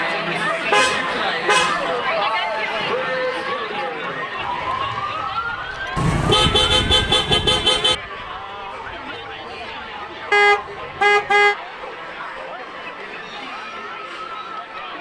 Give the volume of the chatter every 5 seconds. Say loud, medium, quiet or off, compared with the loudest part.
loud, medium, medium.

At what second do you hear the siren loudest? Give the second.
5 s.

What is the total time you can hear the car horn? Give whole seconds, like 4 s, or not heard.
4 s.